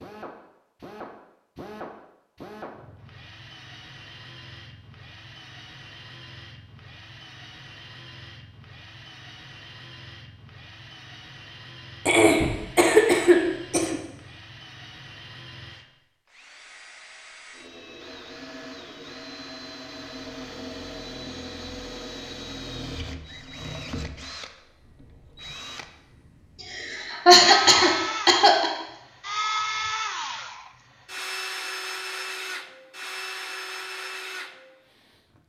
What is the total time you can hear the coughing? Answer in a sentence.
You can hear the coughing for 4 seconds altogether.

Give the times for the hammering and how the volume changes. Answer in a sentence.
The hammering can't be heard in this clip.